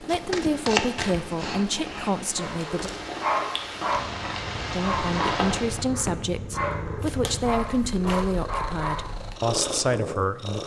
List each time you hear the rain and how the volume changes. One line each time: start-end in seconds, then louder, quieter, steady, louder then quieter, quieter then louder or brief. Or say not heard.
0.0-5.9 louder.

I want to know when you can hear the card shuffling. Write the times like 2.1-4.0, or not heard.
0.1-2.1, 7.0-8.3.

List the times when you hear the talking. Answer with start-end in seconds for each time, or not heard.
0.0-2.9, 4.7-10.6.